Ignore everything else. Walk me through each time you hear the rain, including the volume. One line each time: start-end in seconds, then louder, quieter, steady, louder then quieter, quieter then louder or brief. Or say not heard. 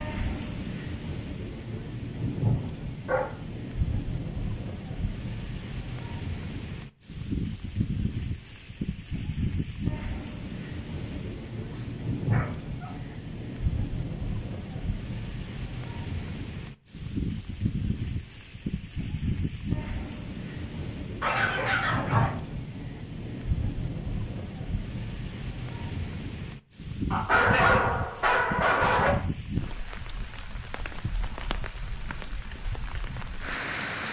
0.0-34.0 steady.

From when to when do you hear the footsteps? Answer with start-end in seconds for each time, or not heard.
not heard.